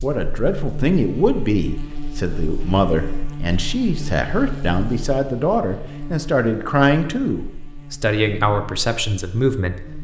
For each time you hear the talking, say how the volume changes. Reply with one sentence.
You can hear the talking from 0.0 to 9.8 s, at a steady volume.